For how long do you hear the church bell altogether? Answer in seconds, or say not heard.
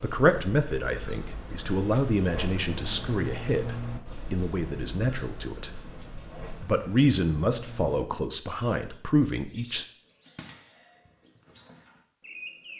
not heard.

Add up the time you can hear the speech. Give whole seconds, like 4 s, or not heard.
9 s.